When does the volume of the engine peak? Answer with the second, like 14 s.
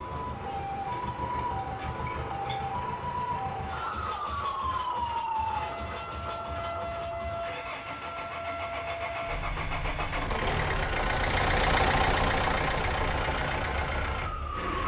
12 s.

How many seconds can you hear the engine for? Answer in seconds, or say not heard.
15 s.